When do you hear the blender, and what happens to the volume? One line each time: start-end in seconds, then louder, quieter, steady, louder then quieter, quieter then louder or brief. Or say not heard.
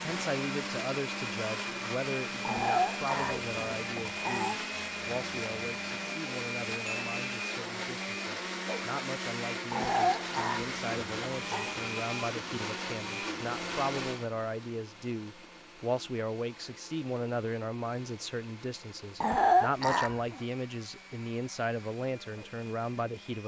0.0-23.4 quieter.